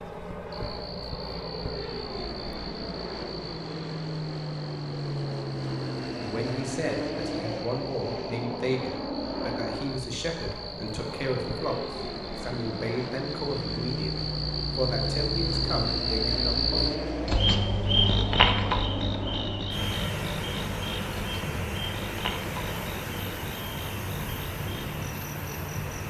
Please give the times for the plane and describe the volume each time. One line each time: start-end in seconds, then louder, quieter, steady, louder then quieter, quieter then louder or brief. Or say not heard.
0.0-26.0 steady.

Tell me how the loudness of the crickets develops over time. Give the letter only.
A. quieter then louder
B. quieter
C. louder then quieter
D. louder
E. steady
C.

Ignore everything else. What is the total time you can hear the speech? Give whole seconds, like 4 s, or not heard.
11 s.